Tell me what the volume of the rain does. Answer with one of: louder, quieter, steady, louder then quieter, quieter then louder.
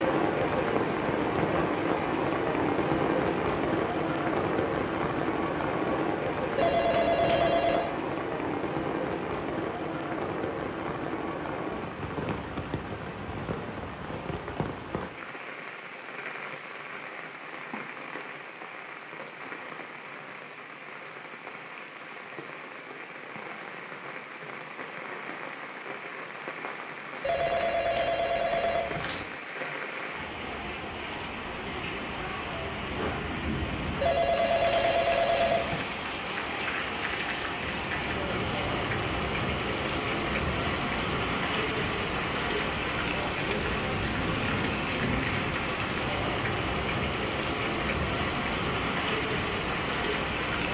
quieter then louder.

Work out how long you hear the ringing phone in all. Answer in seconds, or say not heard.
5 s.